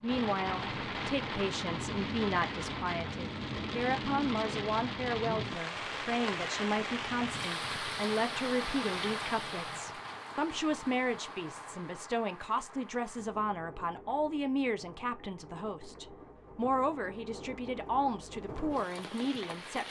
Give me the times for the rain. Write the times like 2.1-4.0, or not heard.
0.0-19.8.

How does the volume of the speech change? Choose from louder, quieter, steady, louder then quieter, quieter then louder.
steady.